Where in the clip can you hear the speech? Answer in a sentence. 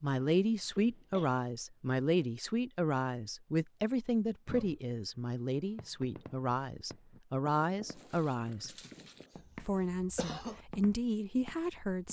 You can hear the speech from 0.0 to 8.7 s and from 9.6 to 12.0 s.